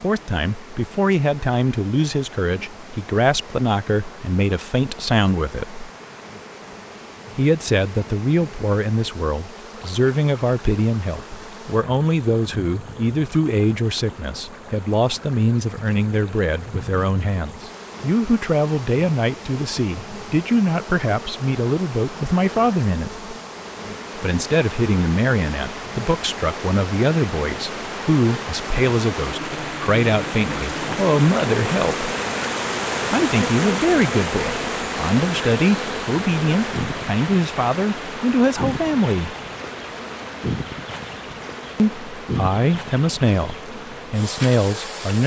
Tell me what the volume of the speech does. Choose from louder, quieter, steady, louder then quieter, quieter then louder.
steady.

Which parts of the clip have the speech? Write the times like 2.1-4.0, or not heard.
0.0-5.8, 7.3-23.3, 24.1-32.1, 33.1-39.4, 41.8-45.2.